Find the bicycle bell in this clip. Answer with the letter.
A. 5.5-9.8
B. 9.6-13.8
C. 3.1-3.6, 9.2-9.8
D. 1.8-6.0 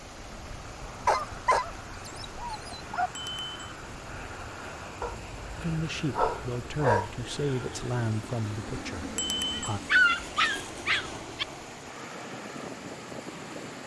C.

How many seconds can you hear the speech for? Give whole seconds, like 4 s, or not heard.
4 s.